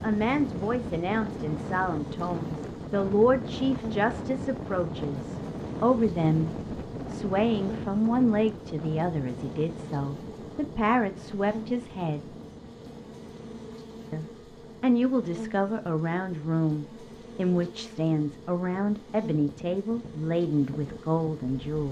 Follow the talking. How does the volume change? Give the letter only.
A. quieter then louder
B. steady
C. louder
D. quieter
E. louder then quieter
B.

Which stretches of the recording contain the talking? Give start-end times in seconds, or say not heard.
0.0-12.2, 14.1-21.8.